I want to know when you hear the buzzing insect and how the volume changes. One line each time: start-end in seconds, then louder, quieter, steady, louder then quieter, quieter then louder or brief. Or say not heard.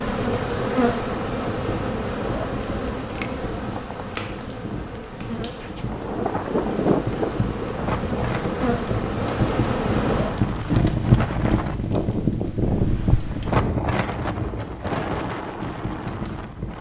0.0-10.4 quieter then louder.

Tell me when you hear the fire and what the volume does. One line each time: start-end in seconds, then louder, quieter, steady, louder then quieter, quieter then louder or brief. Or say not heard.
0.0-16.7 louder then quieter.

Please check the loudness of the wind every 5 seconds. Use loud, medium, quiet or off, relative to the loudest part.
off, loud, loud, medium.